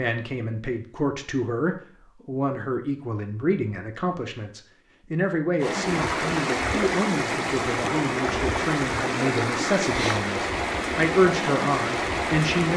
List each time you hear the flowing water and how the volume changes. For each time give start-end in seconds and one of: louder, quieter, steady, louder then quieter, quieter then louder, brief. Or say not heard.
5.6-12.7 steady.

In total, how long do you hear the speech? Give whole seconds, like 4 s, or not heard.
13 s.